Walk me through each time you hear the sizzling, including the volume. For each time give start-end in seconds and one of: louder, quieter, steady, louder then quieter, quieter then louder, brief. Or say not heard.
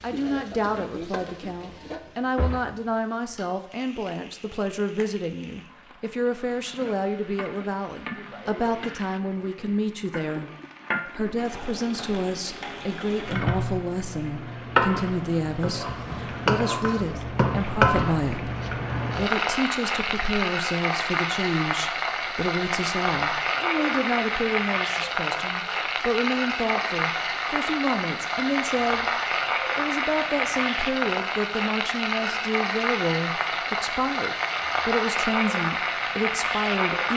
0.0-37.1 louder.